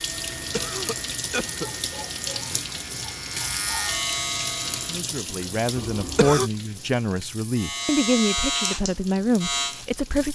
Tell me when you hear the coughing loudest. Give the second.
6 s.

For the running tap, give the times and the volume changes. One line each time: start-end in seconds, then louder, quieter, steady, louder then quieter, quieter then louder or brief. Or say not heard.
0.0-10.3 quieter.